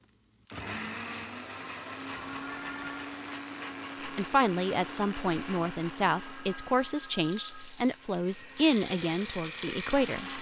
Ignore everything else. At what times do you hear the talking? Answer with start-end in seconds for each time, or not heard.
4.0-10.3.